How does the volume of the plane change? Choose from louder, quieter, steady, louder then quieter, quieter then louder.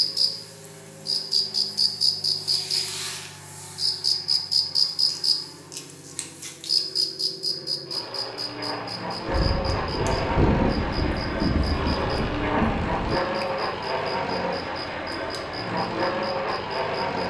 louder.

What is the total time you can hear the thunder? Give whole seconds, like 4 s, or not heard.
4 s.